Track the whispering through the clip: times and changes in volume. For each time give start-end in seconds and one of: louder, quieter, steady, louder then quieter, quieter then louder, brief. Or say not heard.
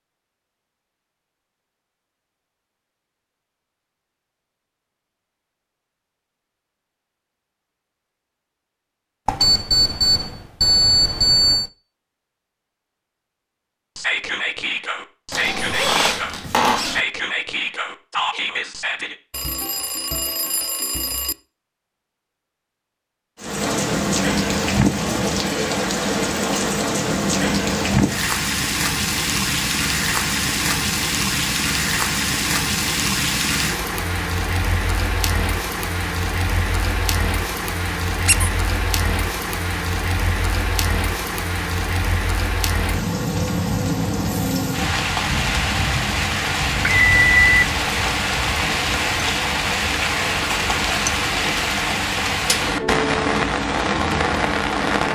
13.9-19.1 steady.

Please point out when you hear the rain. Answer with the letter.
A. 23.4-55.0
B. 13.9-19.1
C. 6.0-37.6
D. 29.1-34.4
A.